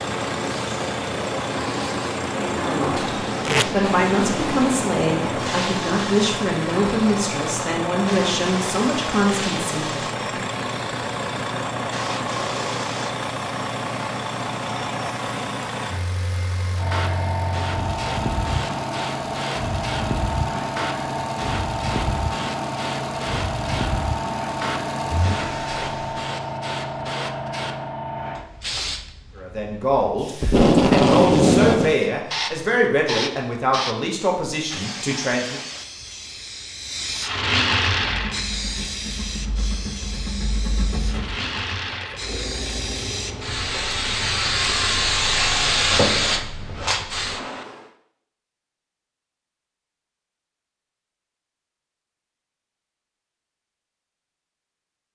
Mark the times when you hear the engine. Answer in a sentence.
You can hear the engine from 0.0 to 26.3 s and from 38.0 to 45.6 s.